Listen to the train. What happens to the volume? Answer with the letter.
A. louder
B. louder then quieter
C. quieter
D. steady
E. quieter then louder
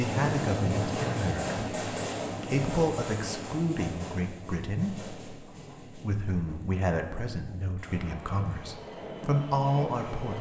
E.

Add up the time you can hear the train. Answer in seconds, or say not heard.
10 s.